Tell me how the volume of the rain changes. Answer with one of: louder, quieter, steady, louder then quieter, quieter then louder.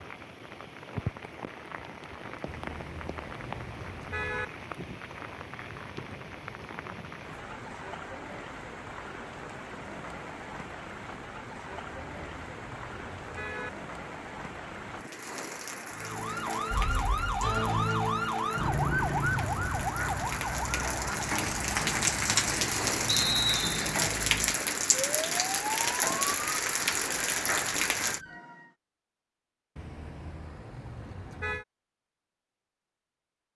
louder.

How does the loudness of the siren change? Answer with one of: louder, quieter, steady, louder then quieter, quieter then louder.
quieter.